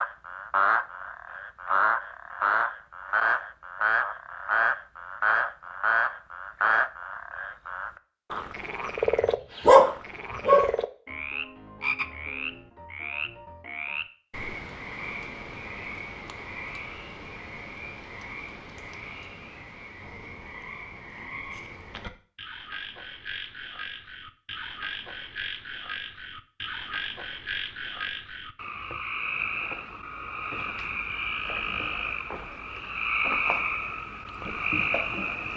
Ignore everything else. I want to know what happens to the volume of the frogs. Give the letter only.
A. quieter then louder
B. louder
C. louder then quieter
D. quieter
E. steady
A.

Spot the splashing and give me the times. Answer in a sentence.
The splashing can't be heard in this clip.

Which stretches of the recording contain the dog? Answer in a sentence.
The dog can be heard from 9.1 to 10.7 s.